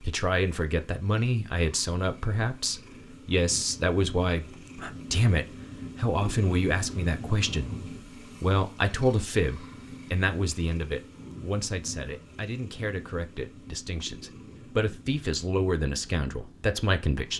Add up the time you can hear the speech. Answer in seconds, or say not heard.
17 s.